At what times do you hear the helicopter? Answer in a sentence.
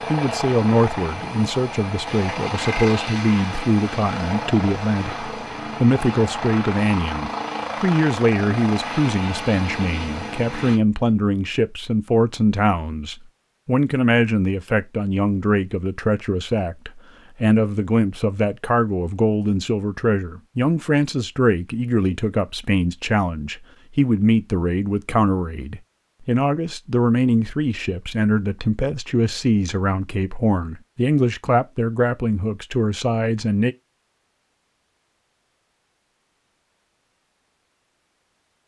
The helicopter can be heard from 0.0 to 10.8 s.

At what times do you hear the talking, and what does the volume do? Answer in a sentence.
You can hear the talking from 0.1 to 33.8 s, at a steady volume.